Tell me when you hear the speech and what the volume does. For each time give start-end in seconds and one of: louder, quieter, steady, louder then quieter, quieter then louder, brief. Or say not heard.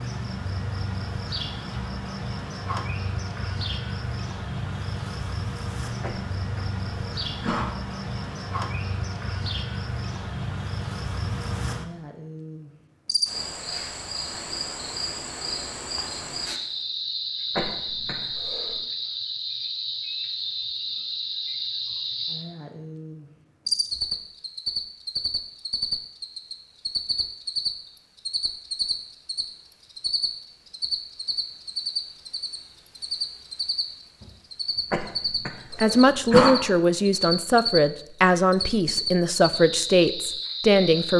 35.8-41.1 steady.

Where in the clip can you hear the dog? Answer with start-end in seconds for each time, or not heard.
not heard.